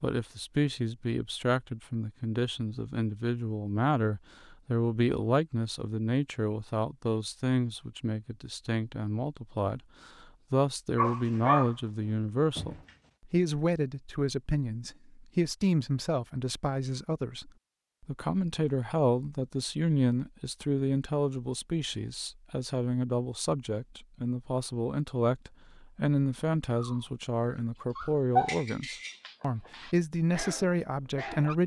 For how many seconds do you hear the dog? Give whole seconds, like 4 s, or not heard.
7 s.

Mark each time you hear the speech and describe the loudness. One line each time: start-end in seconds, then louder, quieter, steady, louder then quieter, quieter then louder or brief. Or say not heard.
0.0-31.6 steady.